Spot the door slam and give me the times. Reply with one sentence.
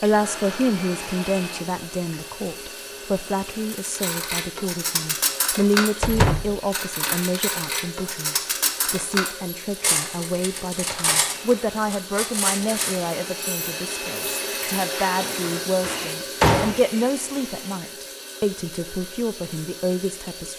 You can hear the door slam from 6.0 to 6.6 s and from 15.2 to 16.8 s.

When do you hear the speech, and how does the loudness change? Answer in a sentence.
The speech can be heard from 0.0 to 20.5 s, at a steady volume.